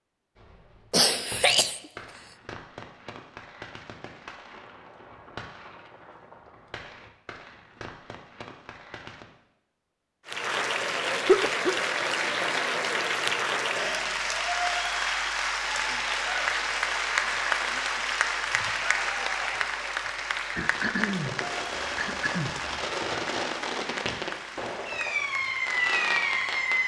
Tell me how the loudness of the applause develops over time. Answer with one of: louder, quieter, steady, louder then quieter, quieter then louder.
quieter.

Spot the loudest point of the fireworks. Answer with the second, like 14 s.
26 s.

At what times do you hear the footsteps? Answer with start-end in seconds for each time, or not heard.
not heard.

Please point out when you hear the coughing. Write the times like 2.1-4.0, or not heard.
0.9-1.8, 11.2-11.9, 20.6-22.8.